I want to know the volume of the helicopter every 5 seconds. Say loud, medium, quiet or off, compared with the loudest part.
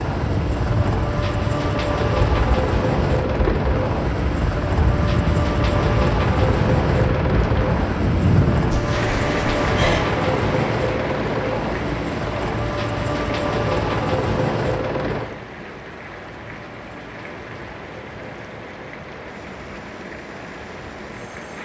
loud, loud, loud, quiet, quiet.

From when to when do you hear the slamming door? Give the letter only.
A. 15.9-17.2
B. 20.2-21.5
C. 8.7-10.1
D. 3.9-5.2
C.